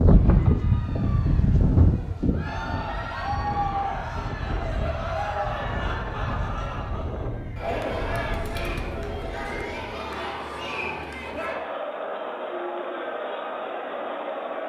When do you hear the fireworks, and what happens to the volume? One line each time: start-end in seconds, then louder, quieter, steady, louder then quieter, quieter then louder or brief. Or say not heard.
not heard.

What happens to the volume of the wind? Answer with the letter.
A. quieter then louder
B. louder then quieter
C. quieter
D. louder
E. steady
C.